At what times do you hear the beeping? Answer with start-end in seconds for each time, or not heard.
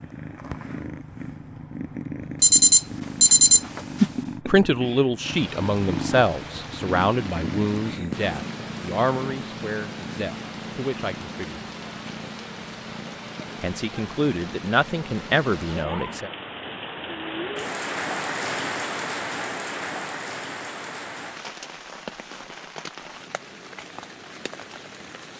2.4-4.0.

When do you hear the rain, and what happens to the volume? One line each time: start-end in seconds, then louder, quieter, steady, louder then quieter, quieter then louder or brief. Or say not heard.
5.2-25.3 louder then quieter.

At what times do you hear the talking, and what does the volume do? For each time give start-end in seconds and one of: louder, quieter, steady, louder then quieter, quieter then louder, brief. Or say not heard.
4.5-11.7 quieter
13.6-16.3 brief.